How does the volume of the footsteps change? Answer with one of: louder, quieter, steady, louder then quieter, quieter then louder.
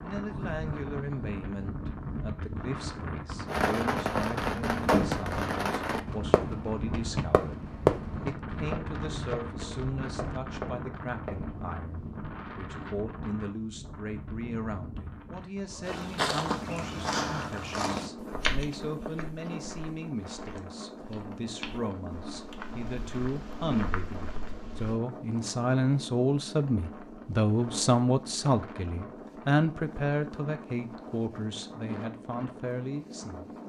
quieter then louder.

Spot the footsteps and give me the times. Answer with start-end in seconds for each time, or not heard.
15.8-25.0.